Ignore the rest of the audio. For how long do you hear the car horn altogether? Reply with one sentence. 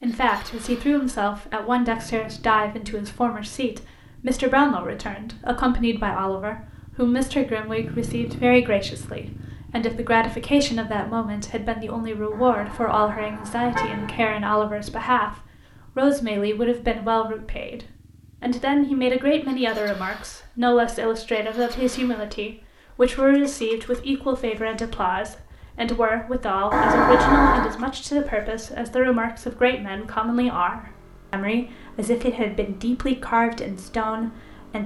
The car horn can be heard for 3 seconds in total.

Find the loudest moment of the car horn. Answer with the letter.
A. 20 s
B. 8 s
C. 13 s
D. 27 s
D.